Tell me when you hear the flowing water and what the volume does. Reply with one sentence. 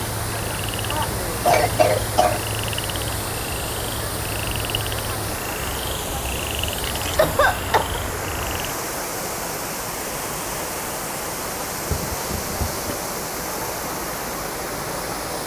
The flowing water can be heard from 0.0 to 15.4 s, at a steady volume.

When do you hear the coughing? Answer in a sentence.
You can hear the coughing from 0.9 to 2.5 s, from 7.2 to 8.0 s and from 11.8 to 12.9 s.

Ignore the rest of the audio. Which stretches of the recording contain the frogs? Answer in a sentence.
You can hear the frogs from 0.0 to 8.7 s.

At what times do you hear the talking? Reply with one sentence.
You can't hear the talking here.